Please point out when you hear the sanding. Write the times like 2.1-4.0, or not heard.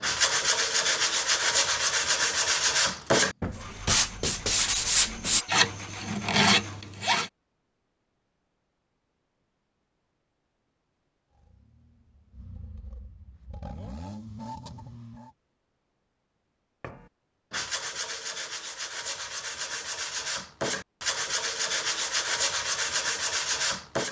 0.0-7.3, 16.8-24.0.